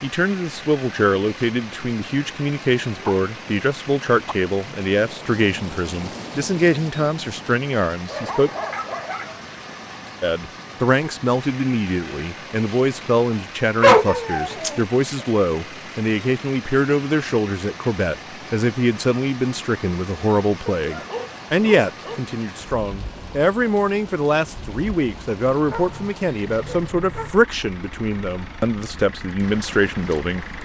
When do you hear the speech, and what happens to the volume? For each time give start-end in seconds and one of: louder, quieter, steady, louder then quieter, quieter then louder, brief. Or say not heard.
0.0-8.5 steady
10.2-30.4 steady.